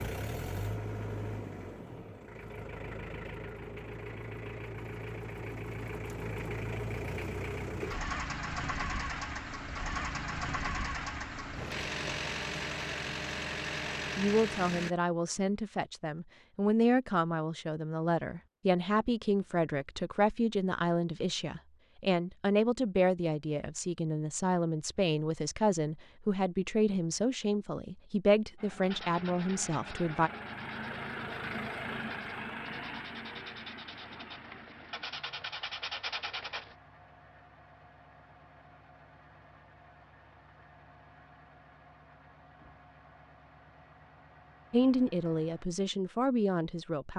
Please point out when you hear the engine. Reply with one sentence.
The engine can be heard from 0.0 to 14.9 s and from 28.6 to 45.6 s.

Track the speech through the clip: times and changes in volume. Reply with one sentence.
The speech can be heard from 14.2 to 30.3 s, at a steady volume; and briefly from 44.7 to 47.1 s.